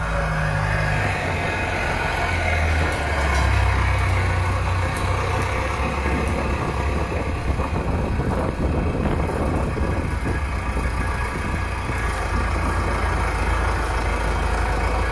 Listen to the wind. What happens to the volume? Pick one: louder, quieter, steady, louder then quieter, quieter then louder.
louder then quieter.